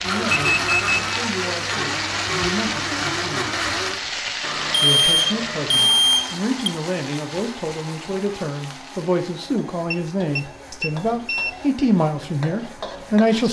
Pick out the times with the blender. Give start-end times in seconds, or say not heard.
0.0-13.3.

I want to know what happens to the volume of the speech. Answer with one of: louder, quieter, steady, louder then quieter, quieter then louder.
louder.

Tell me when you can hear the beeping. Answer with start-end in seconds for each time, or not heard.
0.3-1.2, 4.8-6.7, 9.9-11.7.